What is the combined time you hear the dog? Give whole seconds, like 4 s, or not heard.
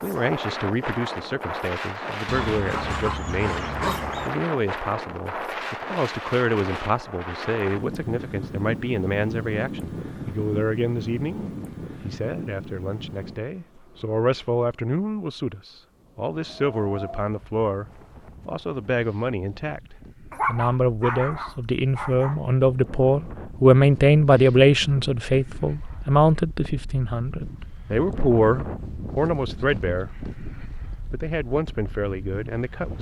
4 s.